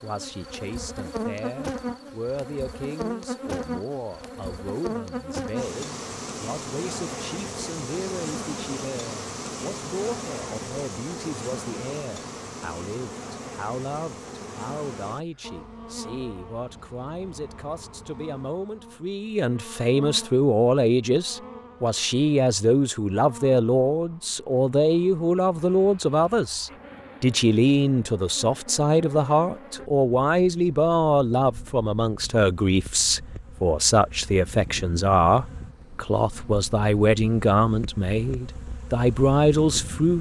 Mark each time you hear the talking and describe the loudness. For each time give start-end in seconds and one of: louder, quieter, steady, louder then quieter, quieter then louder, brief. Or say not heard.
0.0-40.1 louder.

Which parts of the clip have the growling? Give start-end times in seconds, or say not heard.
not heard.